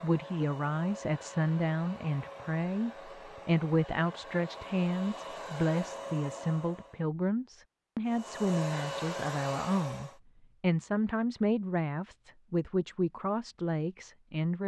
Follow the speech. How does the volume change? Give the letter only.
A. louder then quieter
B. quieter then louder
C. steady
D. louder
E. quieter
C.